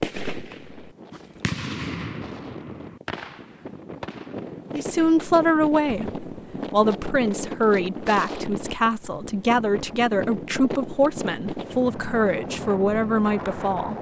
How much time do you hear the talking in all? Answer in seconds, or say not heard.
9 s.